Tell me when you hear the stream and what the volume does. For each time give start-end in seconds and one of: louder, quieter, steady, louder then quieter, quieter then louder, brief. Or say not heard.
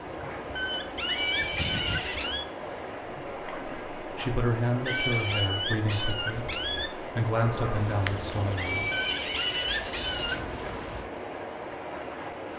0.0-12.5 steady.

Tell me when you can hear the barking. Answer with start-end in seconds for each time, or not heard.
0.6-2.5, 4.8-6.9, 8.9-10.4.